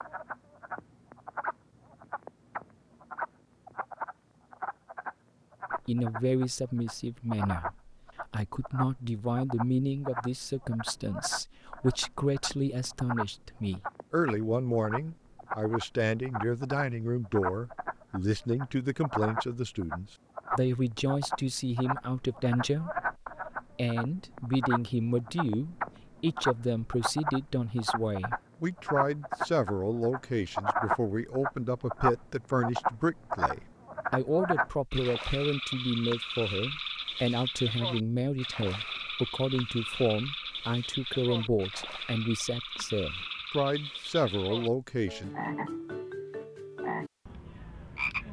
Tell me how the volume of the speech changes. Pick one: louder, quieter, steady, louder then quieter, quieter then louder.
steady.